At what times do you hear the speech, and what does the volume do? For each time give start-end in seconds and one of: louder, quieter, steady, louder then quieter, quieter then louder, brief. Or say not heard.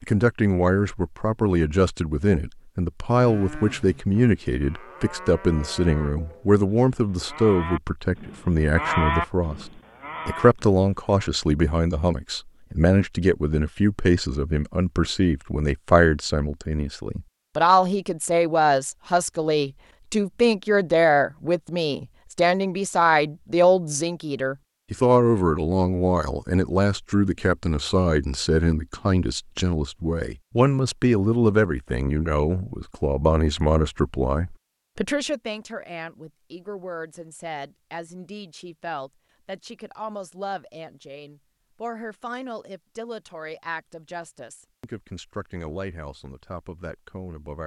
0.0-47.6 quieter.